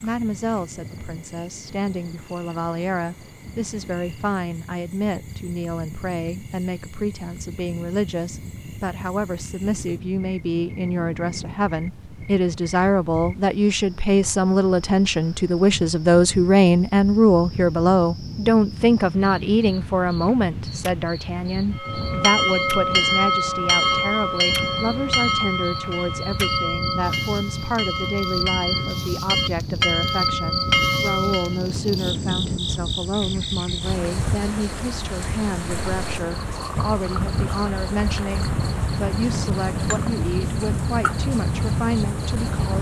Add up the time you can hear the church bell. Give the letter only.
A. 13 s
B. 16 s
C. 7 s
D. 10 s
D.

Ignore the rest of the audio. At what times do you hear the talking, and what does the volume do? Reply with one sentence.
The talking can be heard from 0.0 to 42.7 s, getting louder then quieter.